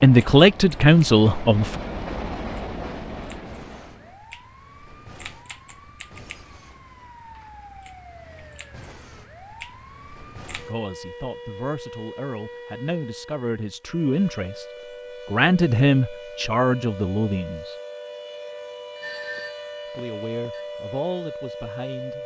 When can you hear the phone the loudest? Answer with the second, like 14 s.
19 s.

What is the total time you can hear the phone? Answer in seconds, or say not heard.
2 s.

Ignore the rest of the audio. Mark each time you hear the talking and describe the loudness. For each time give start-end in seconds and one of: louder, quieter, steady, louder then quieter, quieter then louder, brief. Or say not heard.
0.0-1.8 brief
10.7-14.7 louder
15.2-17.8 brief
19.9-22.2 brief.